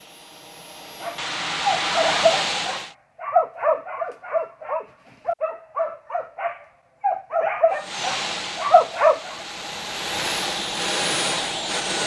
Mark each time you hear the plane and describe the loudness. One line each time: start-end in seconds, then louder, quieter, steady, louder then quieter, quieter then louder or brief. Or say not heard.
0.0-2.9 brief
7.8-12.0 quieter then louder.